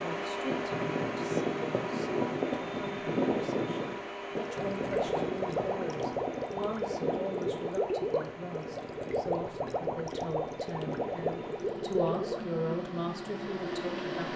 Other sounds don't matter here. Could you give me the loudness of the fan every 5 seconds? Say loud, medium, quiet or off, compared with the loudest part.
loud, medium, medium.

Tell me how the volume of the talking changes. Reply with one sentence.
The volume of the talking goes up.